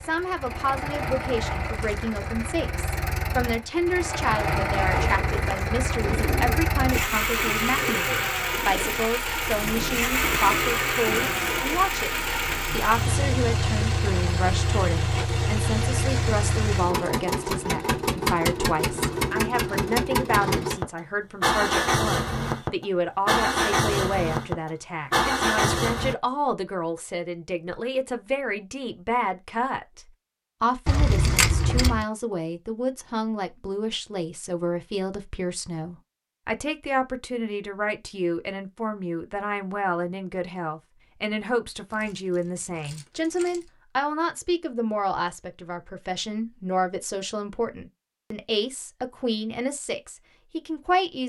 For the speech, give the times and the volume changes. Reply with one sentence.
The speech can be heard from 0.0 to 51.2 s, at a steady volume.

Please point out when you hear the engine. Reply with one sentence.
The engine can be heard from 0.0 to 26.1 s.